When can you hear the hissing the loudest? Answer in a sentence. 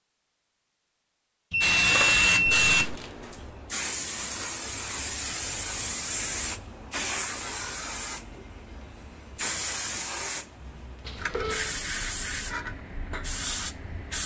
The loudest moment of the hissing is at 2 seconds.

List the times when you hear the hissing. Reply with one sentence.
The hissing can be heard from 1.6 to 14.2 s.